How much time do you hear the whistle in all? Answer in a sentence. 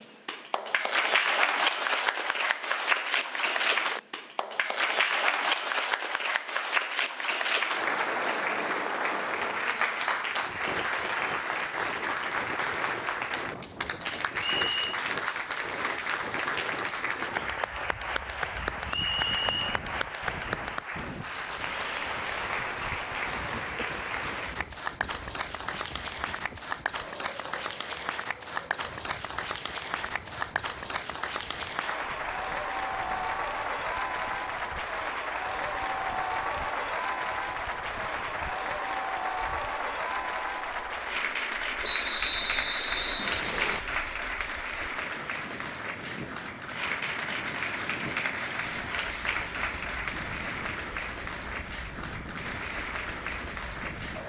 The whistle can be heard for 3 seconds in total.